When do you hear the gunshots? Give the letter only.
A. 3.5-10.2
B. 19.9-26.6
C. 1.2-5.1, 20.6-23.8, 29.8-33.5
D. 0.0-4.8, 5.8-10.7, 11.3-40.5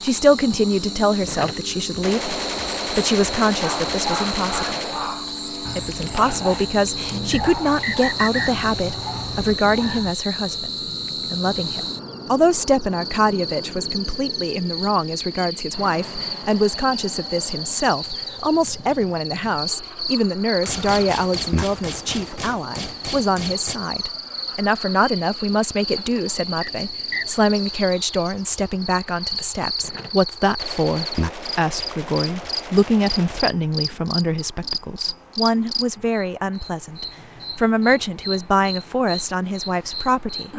C.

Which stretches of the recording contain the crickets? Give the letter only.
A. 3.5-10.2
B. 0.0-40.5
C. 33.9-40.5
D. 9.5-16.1
B.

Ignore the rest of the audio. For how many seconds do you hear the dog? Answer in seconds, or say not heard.
7 s.